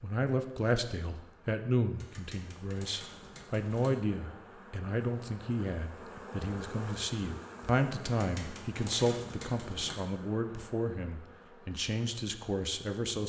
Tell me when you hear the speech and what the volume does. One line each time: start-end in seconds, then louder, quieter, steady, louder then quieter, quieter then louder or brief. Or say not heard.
0.0-13.2 steady.